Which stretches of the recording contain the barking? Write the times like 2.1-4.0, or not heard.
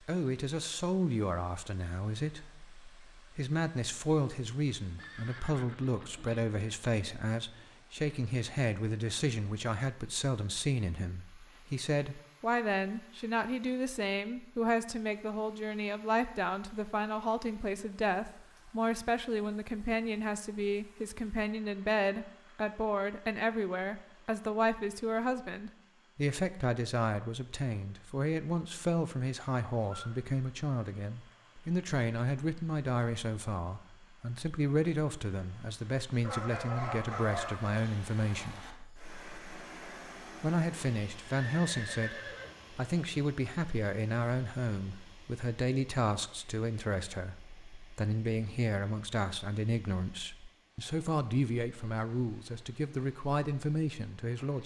36.2-37.8.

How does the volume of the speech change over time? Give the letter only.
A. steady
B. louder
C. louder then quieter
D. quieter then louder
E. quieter
A.